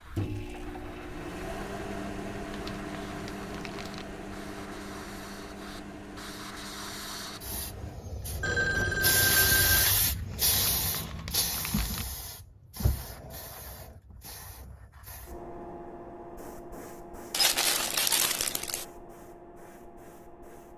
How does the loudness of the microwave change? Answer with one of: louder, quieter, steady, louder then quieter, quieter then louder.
quieter.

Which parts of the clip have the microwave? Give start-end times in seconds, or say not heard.
0.0-8.0.